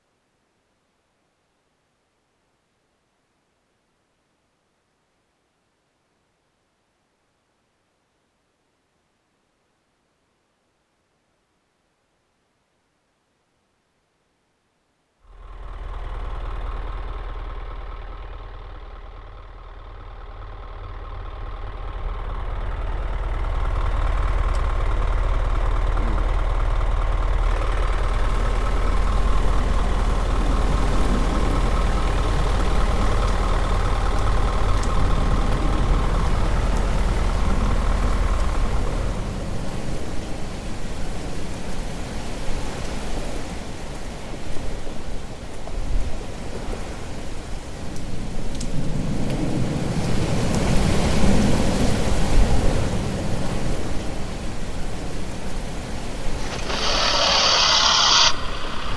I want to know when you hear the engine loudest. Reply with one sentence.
The volume of the engine peaks at 58 seconds.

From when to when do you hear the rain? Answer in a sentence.
You can hear the rain from 27.9 to 58.9 s.